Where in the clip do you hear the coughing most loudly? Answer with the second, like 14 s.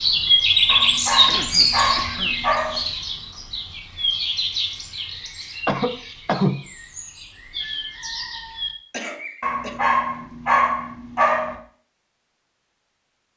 6 s.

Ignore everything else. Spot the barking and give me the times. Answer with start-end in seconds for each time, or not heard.
0.7-2.9, 9.4-11.6.